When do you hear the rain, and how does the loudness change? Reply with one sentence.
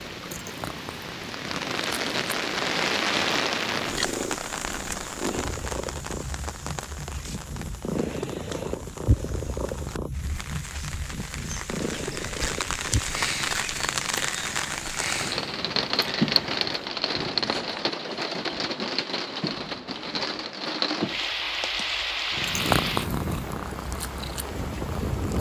The rain can be heard from 0.0 to 25.3 s, getting quieter then louder.